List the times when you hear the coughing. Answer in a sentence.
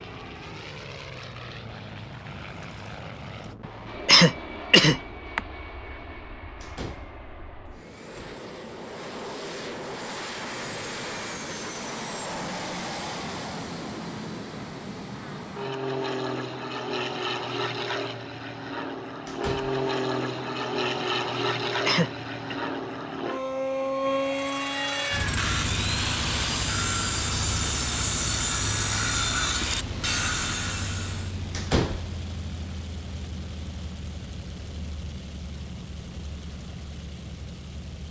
The coughing can be heard from 4.0 to 5.4 s and from 21.4 to 22.6 s.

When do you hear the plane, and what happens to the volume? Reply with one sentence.
The plane can be heard from 0.0 to 38.0 s, getting louder then quieter.